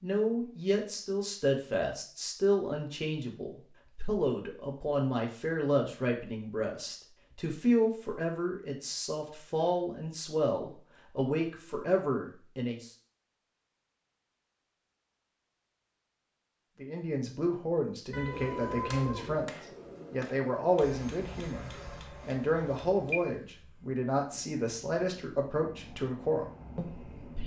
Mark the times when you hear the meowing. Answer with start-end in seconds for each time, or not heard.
18.1-19.4.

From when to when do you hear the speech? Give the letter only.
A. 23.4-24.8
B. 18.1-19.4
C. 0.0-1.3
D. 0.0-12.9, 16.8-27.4
D.